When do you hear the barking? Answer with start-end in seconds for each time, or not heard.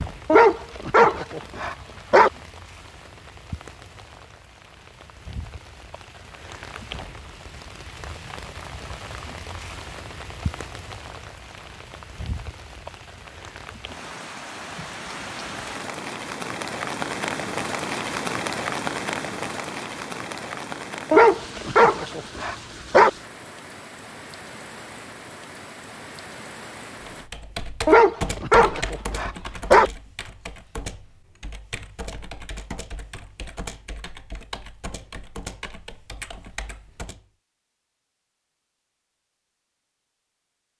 0.2-2.3, 21.1-23.1, 27.9-29.9.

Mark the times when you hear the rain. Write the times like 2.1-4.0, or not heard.
0.0-27.3.